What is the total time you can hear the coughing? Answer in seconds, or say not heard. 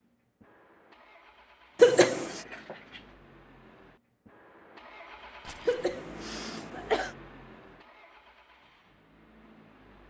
2 s.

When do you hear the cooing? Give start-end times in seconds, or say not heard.
not heard.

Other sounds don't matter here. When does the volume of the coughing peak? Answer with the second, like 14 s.
2 s.